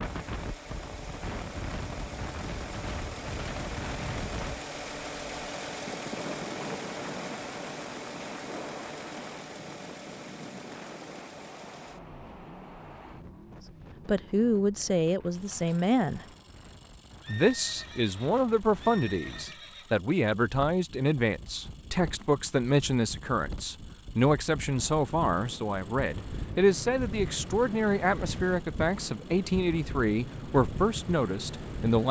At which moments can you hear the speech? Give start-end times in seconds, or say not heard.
14.1-16.2, 17.2-32.0.